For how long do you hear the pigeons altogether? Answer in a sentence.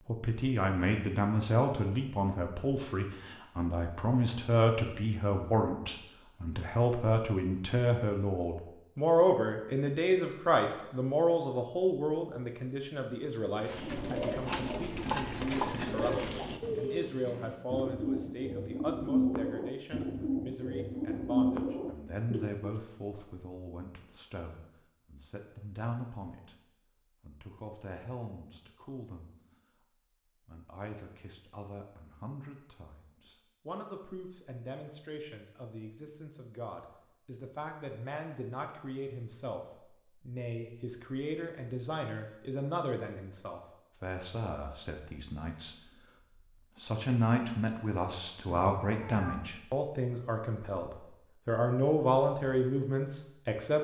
You can hear the pigeons for 9 seconds altogether.